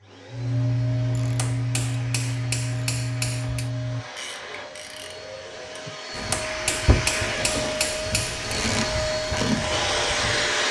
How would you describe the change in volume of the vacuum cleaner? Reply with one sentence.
The volume of the vacuum cleaner goes up.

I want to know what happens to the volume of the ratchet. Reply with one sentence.
The loudness of the ratchet goes down, then up.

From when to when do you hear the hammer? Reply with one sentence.
You can hear the hammer from 1.4 to 3.7 s and from 6.3 to 8.4 s.